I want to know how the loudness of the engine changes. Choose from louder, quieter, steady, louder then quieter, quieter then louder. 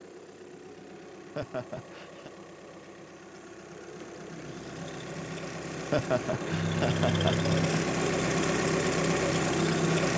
louder.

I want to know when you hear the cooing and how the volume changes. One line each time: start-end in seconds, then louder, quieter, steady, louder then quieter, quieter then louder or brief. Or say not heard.
not heard.